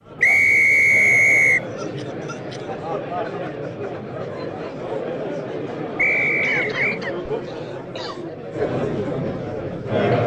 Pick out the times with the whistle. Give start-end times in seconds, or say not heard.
0.2-1.6, 6.0-7.0.